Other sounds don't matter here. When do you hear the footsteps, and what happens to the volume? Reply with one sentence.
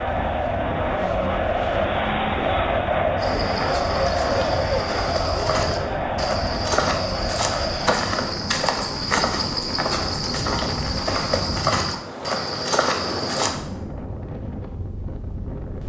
You can hear the footsteps from 3.1 to 13.6 s, getting louder.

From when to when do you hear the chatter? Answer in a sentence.
The chatter can be heard from 0.0 to 8.1 s.